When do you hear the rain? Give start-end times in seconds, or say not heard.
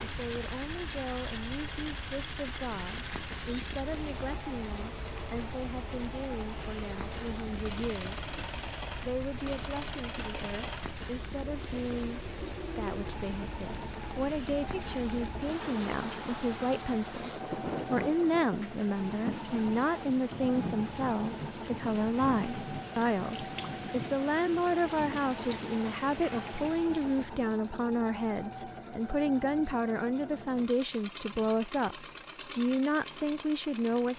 0.0-27.4.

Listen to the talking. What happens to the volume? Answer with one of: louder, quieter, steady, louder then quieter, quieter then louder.
louder.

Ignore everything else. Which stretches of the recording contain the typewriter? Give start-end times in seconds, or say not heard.
not heard.